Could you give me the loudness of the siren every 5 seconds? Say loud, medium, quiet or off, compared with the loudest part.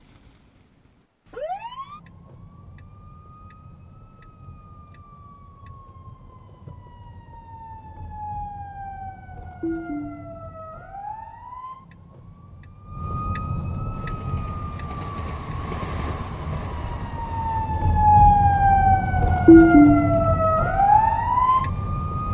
quiet, quiet, quiet, loud, loud.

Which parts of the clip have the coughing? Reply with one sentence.
You can't hear the coughing here.